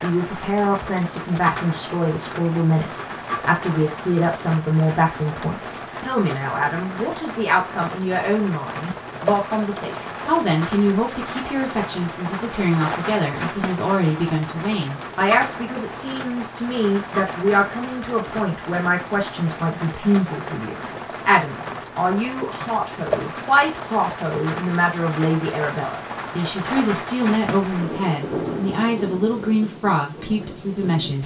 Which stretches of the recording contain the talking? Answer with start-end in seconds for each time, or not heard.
0.0-31.2.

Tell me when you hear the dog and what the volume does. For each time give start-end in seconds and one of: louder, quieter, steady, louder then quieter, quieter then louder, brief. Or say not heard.
not heard.